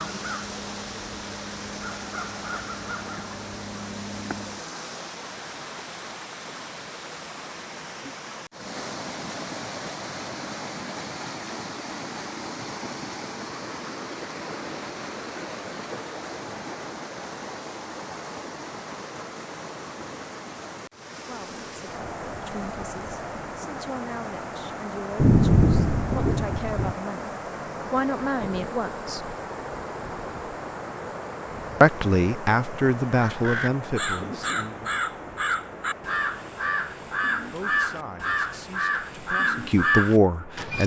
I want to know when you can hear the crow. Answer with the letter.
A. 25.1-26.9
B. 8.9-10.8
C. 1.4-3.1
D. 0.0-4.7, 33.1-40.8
D.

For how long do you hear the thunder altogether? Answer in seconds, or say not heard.
2 s.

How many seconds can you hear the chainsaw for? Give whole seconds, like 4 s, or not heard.
not heard.